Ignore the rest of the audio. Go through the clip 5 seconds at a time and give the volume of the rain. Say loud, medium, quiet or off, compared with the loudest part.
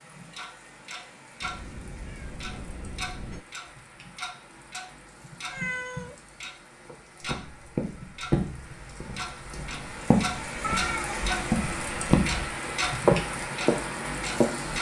quiet, quiet, loud.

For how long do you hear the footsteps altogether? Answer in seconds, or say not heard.
8 s.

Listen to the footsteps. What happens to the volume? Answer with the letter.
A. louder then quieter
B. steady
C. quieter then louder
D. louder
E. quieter
C.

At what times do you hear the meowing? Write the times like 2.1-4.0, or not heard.
1.4-3.5, 5.5-6.2, 10.6-11.3.